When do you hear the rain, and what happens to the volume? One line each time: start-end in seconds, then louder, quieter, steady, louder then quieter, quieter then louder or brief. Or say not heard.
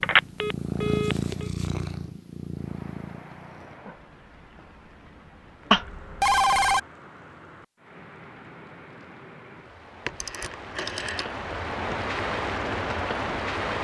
2.5-13.8 louder.